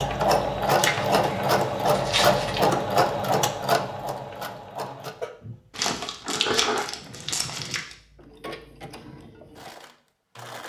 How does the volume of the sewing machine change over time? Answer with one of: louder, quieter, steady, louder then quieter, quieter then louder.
quieter.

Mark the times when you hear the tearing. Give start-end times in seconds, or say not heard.
0.7-2.7, 5.8-8.0.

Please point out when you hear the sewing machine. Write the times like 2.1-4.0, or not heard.
0.0-10.6.